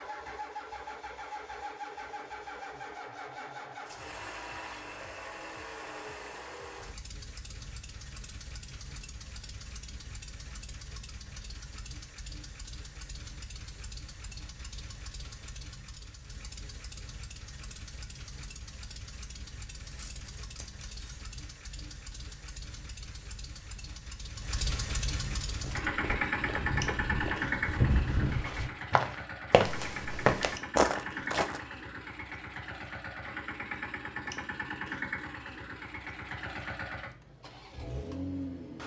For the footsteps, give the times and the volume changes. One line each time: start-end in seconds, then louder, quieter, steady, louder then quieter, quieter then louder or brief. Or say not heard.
25.2-31.6 louder.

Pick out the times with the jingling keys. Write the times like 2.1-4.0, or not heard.
19.9-21.2.